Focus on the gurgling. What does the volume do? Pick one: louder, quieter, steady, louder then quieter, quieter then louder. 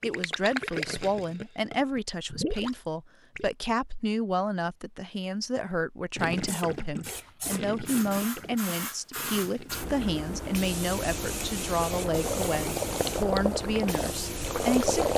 quieter then louder.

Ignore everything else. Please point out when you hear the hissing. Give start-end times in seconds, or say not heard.
6.5-15.1.